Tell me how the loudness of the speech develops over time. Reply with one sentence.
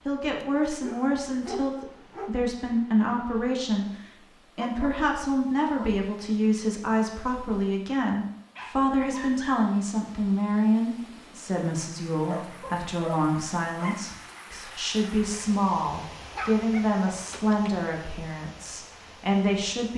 The volume of the speech stays about the same.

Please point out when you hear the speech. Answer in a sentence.
You can hear the speech from 0.1 to 19.9 s.